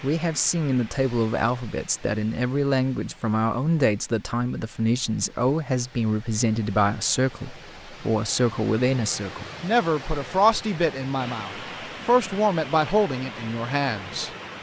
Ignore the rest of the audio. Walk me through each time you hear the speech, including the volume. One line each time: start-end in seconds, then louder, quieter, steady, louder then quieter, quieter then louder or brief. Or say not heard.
0.0-14.3 steady.